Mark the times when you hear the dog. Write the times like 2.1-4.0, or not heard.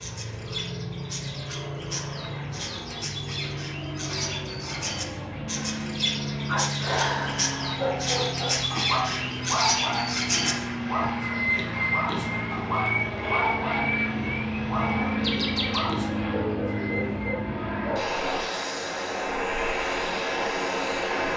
6.5-18.0.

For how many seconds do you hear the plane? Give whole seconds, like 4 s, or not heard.
21 s.